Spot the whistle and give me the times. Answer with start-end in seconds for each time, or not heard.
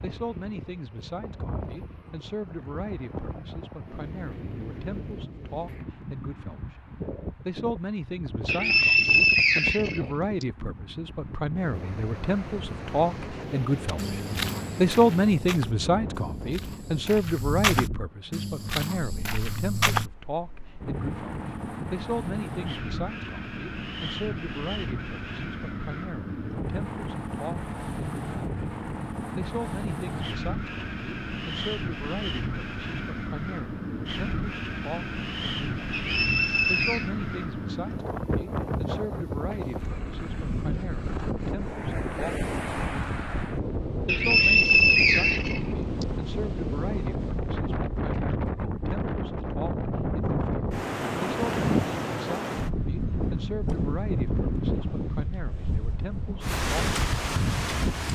8.4-10.4, 35.9-37.1, 44.0-46.0.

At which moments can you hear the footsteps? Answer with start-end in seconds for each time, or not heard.
13.8-20.1.